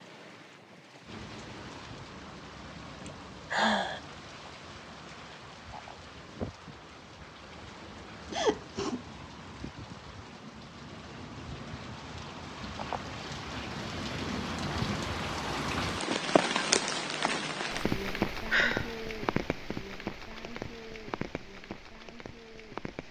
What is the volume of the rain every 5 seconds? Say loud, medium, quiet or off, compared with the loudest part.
quiet, quiet, medium, loud, medium.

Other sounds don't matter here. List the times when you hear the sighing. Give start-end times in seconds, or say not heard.
3.0-4.0, 8.3-9.0, 18.5-18.9.